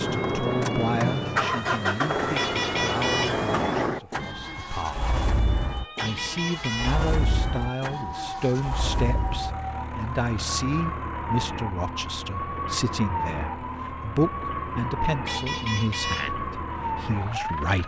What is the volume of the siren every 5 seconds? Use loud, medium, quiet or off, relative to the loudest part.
medium, medium, loud, loud.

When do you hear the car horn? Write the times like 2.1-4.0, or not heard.
2.4-3.4, 6.0-7.0, 15.2-16.3.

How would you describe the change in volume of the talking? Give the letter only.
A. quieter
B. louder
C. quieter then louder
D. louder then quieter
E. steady
E.